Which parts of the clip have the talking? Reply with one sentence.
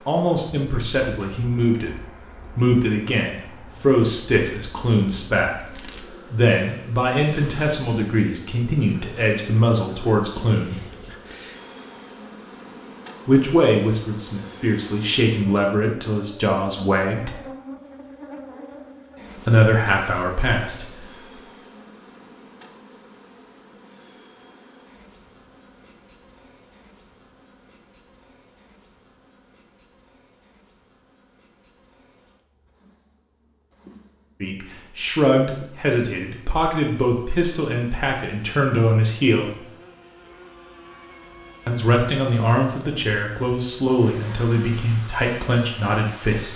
The talking can be heard from 0.1 to 10.8 s, from 13.2 to 17.3 s, from 19.4 to 21.4 s, from 34.4 to 39.6 s and from 41.6 to 46.5 s.